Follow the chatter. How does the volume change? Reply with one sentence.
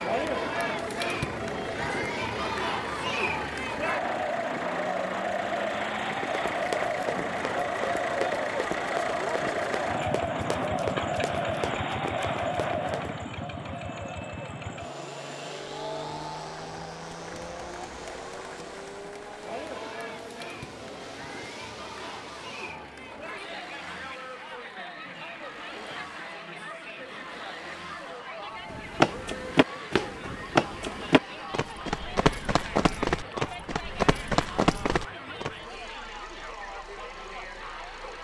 The loudness of the chatter goes down.